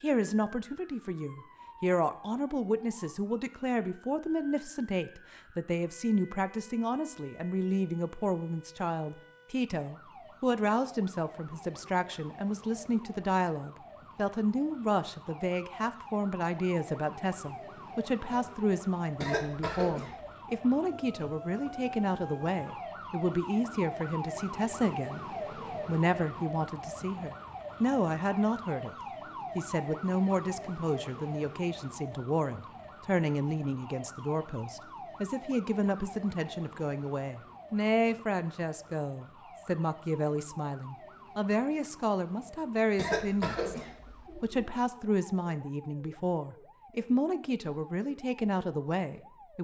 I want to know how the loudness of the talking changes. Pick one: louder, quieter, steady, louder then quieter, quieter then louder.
steady.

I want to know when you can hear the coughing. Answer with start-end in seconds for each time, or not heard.
19.2-20.3, 43.0-44.6.